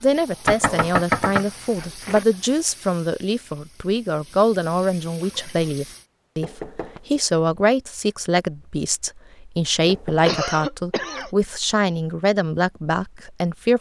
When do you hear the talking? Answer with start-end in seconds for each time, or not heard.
0.0-13.7.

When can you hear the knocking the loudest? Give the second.
1 s.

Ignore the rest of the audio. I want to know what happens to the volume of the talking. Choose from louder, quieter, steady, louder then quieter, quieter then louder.
steady.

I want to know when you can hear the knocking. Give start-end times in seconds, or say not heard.
0.5-2.2, 6.4-7.0, 9.8-10.3.